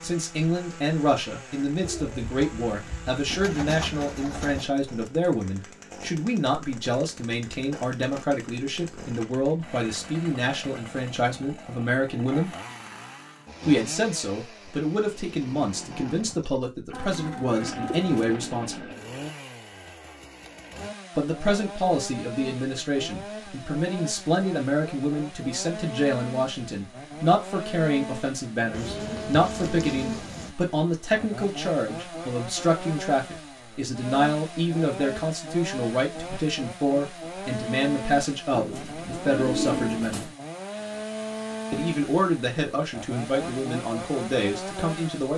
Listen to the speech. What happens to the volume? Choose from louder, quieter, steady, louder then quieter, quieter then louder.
steady.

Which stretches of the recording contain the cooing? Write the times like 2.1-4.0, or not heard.
1.8-4.7, 16.9-18.4, 28.7-30.6, 38.5-40.4.